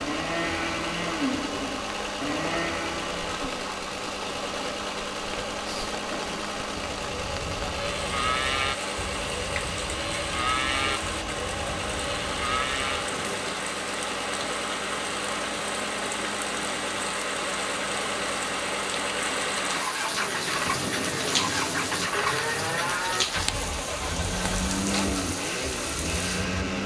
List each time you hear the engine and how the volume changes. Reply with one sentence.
You can hear the engine from 0.0 to 26.8 s, at a steady volume.